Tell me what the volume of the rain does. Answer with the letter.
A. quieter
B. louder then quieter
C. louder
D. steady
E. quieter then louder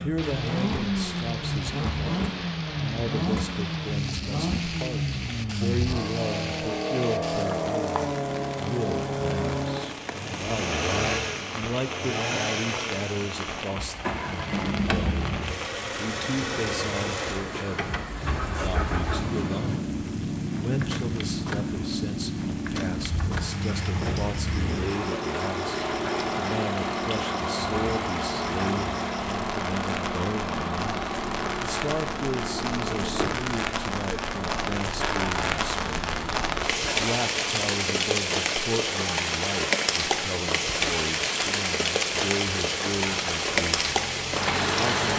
C.